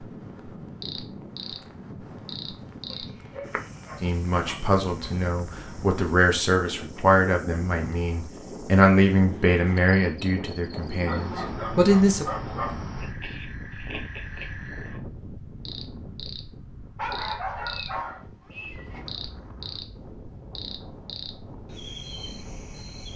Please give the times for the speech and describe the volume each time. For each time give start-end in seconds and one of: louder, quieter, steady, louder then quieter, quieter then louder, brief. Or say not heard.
4.0-12.2 louder then quieter.